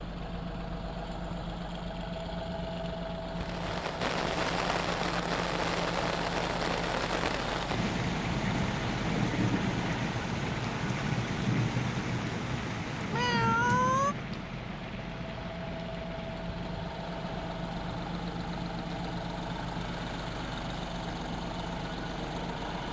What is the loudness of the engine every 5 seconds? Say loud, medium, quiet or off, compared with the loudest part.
loud, loud, medium, loud, loud.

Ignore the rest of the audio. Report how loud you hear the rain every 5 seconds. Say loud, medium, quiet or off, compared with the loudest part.
loud, loud, loud, quiet, quiet.